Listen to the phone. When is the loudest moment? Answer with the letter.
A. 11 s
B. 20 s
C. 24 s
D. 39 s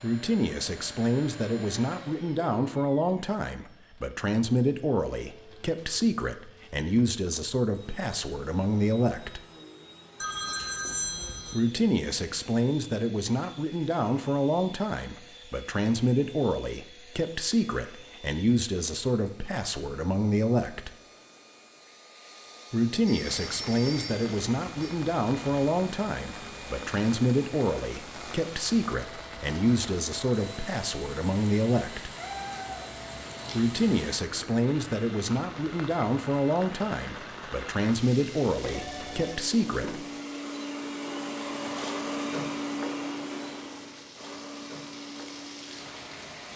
A.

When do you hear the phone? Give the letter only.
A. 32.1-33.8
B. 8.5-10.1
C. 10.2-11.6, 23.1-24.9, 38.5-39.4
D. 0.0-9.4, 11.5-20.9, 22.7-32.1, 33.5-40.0
C.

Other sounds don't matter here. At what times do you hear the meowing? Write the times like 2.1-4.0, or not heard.
32.1-33.8.